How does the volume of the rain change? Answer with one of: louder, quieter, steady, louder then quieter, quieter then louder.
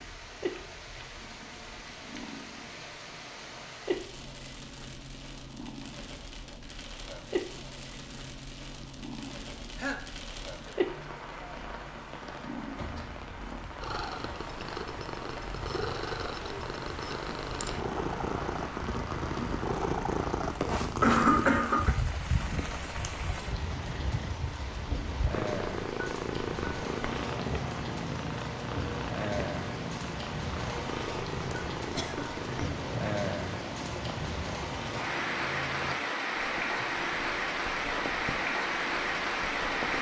louder.